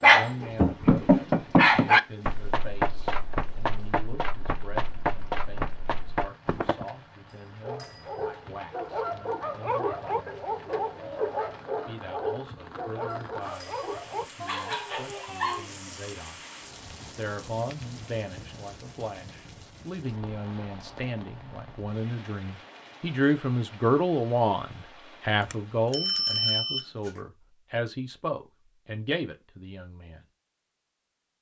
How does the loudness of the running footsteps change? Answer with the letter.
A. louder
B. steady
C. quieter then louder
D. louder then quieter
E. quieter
E.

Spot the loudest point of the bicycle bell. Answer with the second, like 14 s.
26 s.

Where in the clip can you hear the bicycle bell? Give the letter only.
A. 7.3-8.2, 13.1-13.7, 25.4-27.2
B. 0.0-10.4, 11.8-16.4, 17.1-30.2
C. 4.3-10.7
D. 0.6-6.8
A.